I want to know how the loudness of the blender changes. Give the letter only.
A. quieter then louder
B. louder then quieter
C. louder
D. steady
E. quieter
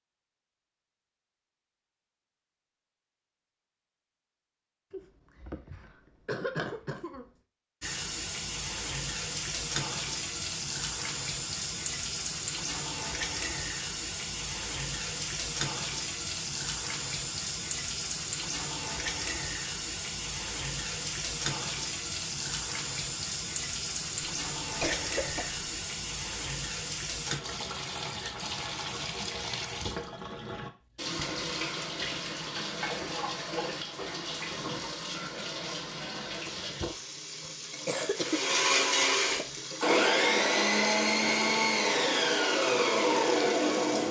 D.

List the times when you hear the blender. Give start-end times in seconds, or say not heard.
38.1-44.0.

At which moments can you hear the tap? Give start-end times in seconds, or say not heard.
7.8-44.0.